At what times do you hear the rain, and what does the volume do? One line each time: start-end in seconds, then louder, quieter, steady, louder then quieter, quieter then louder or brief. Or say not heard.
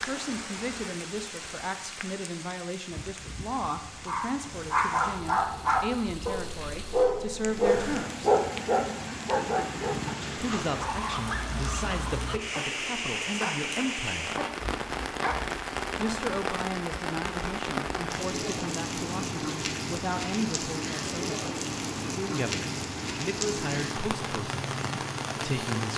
0.0-25.9 louder.